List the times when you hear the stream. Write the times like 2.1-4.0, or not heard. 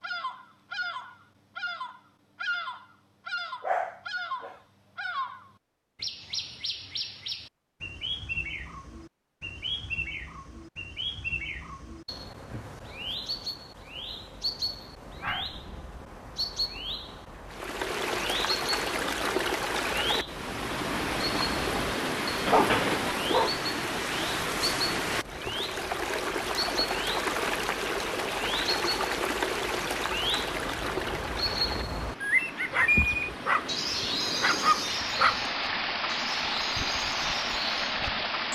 17.4-38.4.